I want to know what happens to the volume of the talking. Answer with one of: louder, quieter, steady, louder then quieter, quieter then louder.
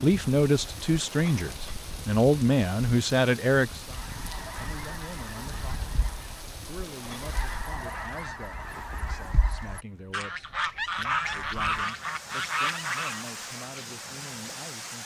quieter.